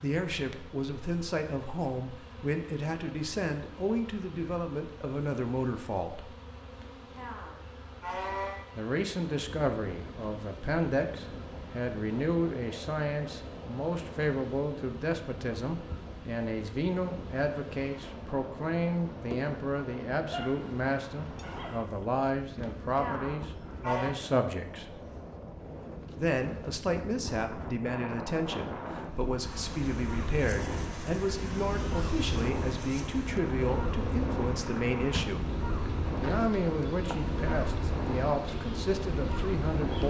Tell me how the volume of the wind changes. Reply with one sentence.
The volume of the wind goes up.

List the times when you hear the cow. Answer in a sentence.
The cow can be heard from 6.8 to 8.7 s and from 22.6 to 24.1 s.